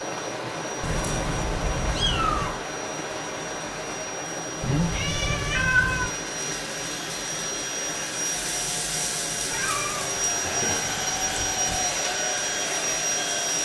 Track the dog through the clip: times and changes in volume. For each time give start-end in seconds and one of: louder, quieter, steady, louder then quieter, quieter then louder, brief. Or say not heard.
not heard.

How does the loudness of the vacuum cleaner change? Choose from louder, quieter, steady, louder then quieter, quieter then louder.
louder.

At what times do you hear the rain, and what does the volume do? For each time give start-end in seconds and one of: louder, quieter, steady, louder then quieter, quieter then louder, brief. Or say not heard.
0.0-13.6 quieter.